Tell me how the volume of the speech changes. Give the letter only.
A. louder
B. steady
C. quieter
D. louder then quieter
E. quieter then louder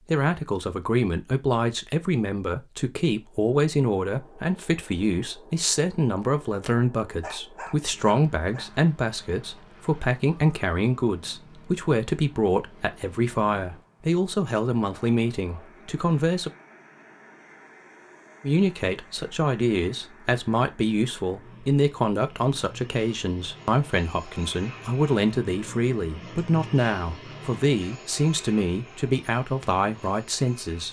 B.